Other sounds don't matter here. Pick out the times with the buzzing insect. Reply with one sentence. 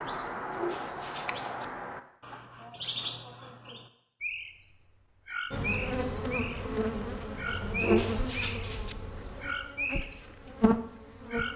You can hear the buzzing insect from 5.5 to 11.5 s.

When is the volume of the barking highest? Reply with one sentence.
The loudest moment of the barking is at 8 seconds.